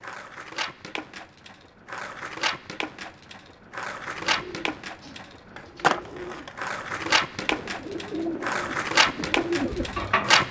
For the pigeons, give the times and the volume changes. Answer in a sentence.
You can hear the pigeons from 4.2 to 10.4 s, getting louder.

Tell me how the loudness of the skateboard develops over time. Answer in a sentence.
The loudness of the skateboard goes up.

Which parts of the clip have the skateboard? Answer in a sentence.
The skateboard can be heard from 0.0 to 10.4 s.